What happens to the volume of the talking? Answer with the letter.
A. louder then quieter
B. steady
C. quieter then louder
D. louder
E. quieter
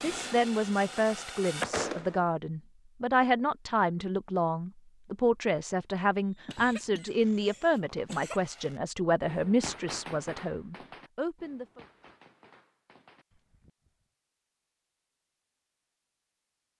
B.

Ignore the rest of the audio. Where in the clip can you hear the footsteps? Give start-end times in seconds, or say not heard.
not heard.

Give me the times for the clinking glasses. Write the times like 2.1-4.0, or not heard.
not heard.